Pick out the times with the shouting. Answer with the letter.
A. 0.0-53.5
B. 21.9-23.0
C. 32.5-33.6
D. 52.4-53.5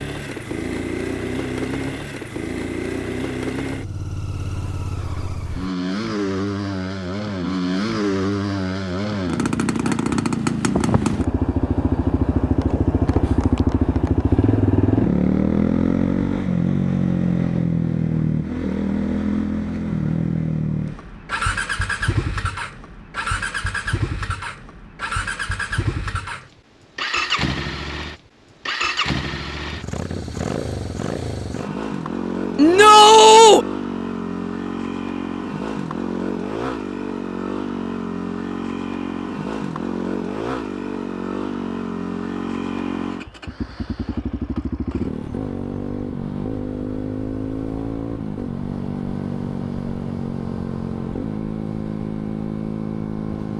C.